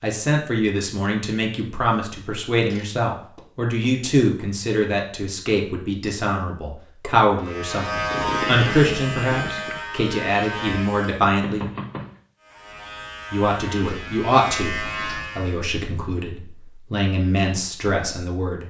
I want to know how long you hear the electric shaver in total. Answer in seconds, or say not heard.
7 s.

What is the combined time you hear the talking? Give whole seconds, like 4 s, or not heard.
17 s.